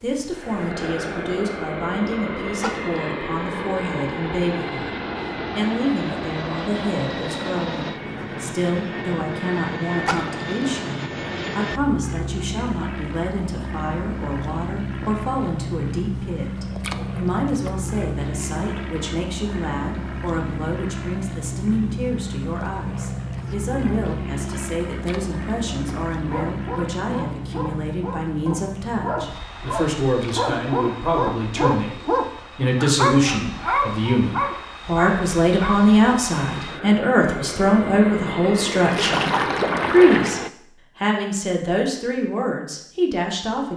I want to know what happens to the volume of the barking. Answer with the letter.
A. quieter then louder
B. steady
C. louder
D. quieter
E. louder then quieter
C.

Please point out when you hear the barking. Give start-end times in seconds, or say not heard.
26.2-35.9.